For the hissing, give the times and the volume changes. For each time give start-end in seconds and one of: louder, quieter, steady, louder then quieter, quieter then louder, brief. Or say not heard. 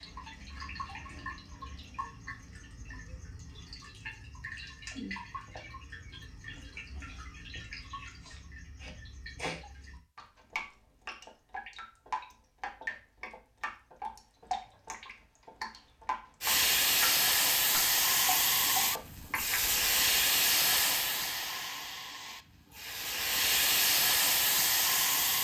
16.4-25.4 quieter then louder.